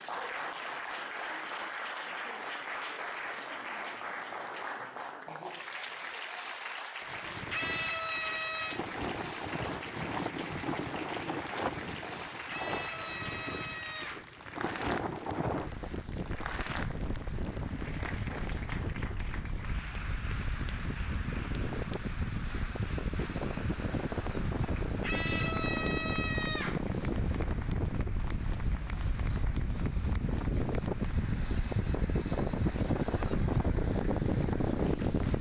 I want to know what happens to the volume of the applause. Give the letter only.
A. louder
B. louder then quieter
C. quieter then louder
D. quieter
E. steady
D.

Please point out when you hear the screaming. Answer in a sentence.
You can hear the screaming from 7.5 to 8.8 s, from 12.4 to 14.3 s and from 25.0 to 26.9 s.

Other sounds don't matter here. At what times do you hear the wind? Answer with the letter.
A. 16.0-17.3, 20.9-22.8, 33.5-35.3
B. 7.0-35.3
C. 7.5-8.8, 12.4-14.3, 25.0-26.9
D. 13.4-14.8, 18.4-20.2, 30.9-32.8
B.